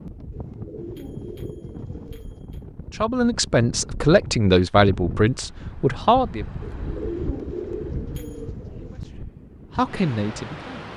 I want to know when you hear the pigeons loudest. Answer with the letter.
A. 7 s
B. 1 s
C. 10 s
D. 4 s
A.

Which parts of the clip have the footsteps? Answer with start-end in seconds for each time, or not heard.
not heard.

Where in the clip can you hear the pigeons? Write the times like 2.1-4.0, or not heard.
0.3-2.4, 6.6-9.0.